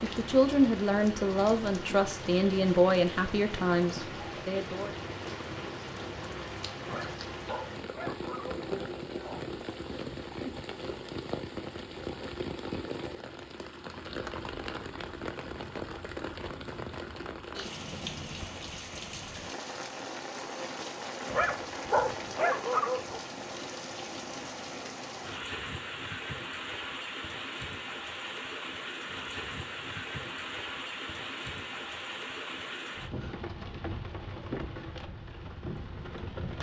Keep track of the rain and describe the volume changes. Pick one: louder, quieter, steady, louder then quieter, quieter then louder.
steady.